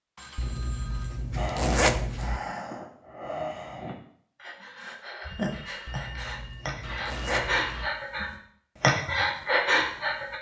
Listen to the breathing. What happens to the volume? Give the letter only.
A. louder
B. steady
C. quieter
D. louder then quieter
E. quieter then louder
A.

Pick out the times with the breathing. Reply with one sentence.
You can hear the breathing from 1.4 to 10.3 s.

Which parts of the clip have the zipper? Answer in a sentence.
The zipper can be heard from 0.3 to 2.4 s and from 5.8 to 7.8 s.